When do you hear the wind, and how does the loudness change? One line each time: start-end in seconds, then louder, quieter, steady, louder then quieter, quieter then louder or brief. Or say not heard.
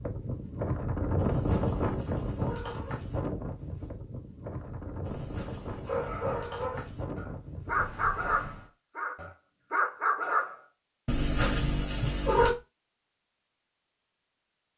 0.0-8.7 quieter.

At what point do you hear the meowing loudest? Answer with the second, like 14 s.
12 s.